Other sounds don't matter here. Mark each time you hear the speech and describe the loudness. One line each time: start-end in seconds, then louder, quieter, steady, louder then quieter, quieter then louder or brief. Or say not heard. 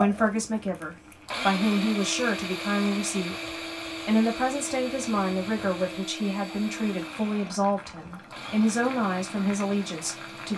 0.0-10.5 steady.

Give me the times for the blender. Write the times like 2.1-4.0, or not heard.
0.0-10.5.